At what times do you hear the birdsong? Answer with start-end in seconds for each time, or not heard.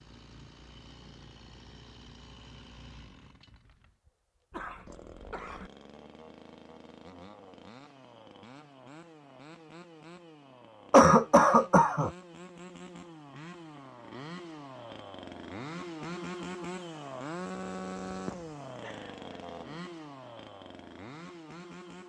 not heard.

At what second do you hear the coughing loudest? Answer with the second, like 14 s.
11 s.